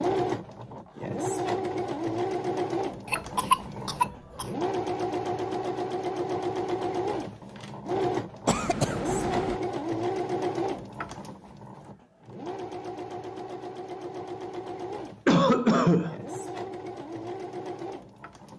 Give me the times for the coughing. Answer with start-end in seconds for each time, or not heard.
3.1-4.5, 8.4-9.6, 15.2-16.1.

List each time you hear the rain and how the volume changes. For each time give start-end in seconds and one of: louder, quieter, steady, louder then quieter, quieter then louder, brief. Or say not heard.
not heard.